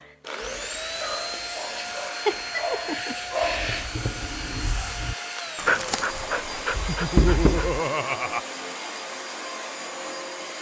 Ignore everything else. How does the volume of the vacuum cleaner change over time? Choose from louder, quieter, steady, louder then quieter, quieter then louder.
steady.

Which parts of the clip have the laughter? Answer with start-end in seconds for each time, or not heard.
2.2-3.1, 6.8-8.4.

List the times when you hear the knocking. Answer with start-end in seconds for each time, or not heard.
6.7-7.8.